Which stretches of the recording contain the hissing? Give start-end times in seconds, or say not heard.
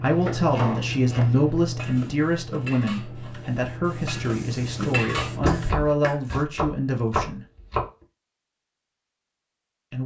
0.0-5.8.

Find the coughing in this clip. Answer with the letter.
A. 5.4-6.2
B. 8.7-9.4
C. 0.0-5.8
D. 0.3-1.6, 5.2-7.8
A.